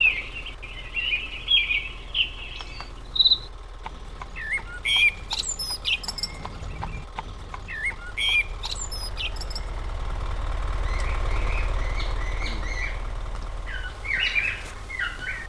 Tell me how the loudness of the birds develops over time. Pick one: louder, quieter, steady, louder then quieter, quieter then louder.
quieter then louder.